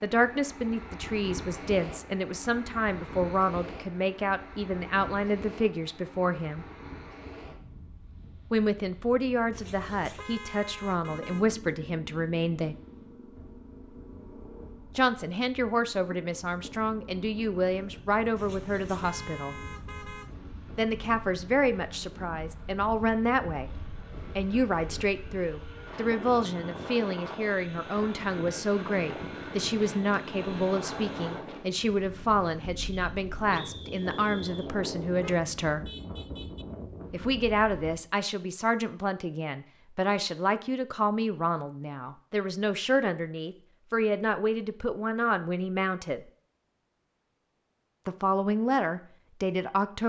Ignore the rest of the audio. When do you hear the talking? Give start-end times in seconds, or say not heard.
0.0-6.7, 8.5-12.8, 14.9-19.6, 20.8-35.9, 37.1-46.2, 48.0-50.0.